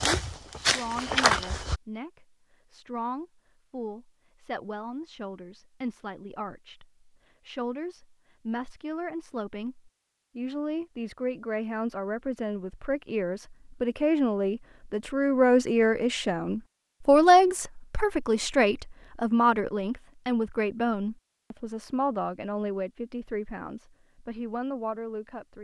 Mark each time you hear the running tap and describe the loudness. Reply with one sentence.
You can't hear the running tap here.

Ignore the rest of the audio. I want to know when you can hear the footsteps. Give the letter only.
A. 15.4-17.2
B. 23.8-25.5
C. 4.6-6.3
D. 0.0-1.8
D.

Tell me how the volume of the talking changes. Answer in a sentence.
The loudness of the talking goes up, then down.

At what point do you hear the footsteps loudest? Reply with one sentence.
The volume of the footsteps peaks at 1 second.